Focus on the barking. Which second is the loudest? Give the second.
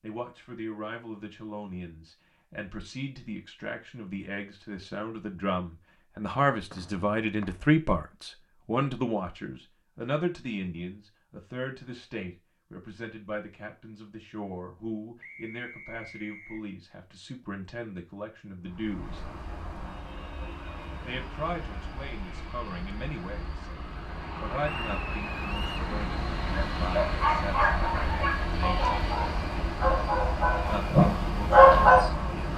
32 s.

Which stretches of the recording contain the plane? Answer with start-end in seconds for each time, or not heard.
18.6-32.5.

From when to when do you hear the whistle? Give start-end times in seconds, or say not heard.
6.7-7.5, 15.2-16.6, 24.6-25.8.